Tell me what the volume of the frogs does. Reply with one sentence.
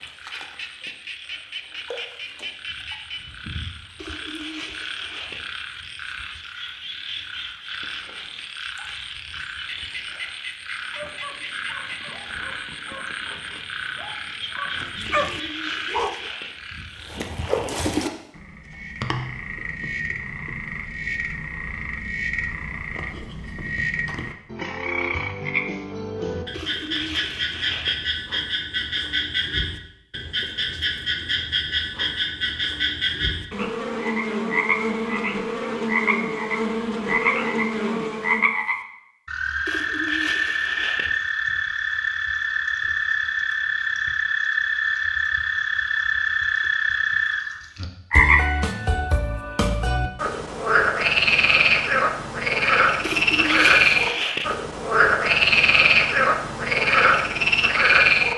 The loudness of the frogs goes up.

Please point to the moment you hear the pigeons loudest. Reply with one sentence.
The volume of the pigeons peaks at 54 seconds.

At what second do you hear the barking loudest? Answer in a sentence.
The volume of the barking peaks at 15 seconds.